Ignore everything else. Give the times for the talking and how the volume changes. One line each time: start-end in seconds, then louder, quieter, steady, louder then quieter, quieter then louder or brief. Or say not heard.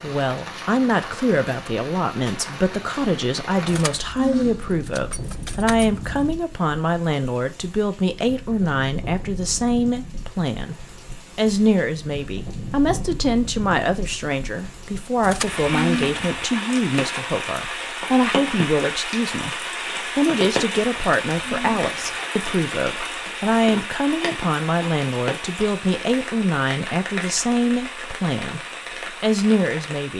0.0-28.6 steady
29.2-30.1 brief.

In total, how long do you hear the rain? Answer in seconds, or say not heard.
30 s.